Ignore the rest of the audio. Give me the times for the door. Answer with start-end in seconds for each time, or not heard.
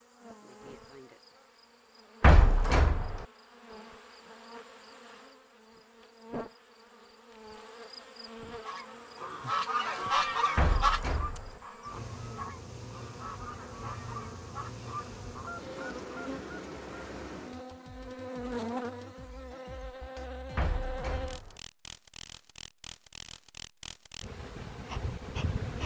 2.2-3.2, 10.6-11.6, 20.6-21.6.